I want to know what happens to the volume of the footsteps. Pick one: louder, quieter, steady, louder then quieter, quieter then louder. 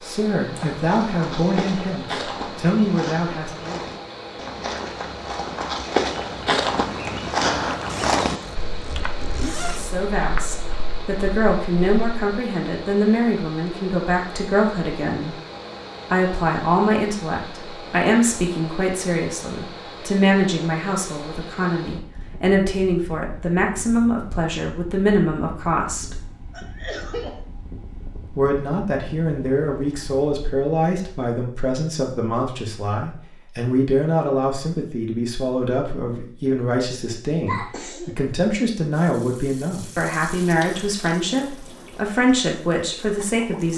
louder then quieter.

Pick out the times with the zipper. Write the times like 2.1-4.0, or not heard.
7.8-9.9.